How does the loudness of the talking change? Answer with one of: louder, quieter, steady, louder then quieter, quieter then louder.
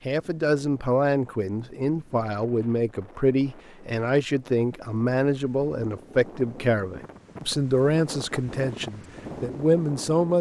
steady.